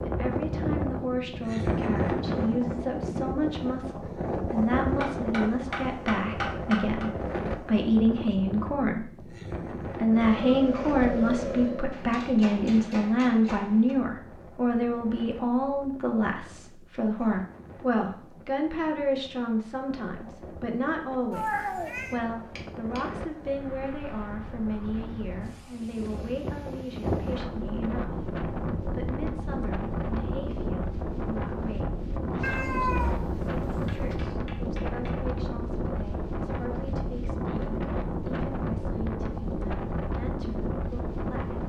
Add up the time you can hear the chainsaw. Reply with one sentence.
You can hear the chainsaw for 2 seconds altogether.